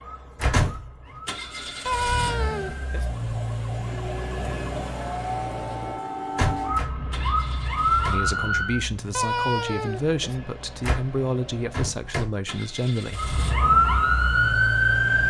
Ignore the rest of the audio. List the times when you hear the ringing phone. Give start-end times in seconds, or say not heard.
1.9-3.1, 9.1-10.4.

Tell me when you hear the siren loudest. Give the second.
14 s.